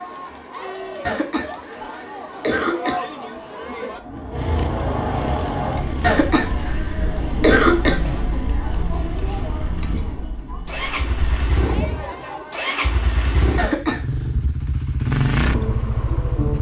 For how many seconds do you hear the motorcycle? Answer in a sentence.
The motorcycle can be heard for 12 seconds in total.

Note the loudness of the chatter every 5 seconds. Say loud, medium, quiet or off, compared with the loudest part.
loud, loud, medium, off.